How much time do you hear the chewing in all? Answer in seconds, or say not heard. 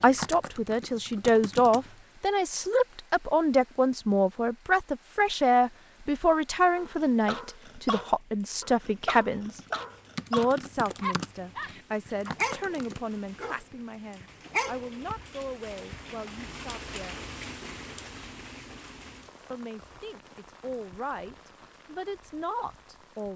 not heard.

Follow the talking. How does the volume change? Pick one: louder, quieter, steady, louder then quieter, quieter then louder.
quieter.